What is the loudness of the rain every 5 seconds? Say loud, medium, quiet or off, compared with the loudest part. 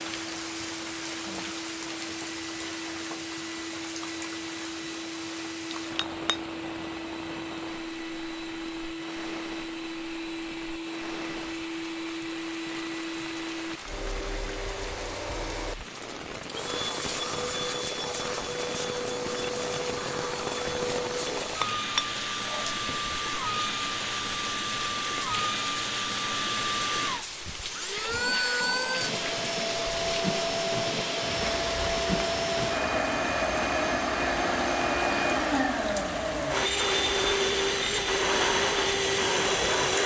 loud, medium, medium, loud, loud, loud, loud, loud.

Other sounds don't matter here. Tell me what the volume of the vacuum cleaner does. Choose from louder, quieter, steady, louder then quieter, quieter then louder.
louder.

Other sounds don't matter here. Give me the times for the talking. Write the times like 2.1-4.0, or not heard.
not heard.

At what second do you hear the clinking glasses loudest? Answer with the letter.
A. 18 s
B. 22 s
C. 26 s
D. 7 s
B.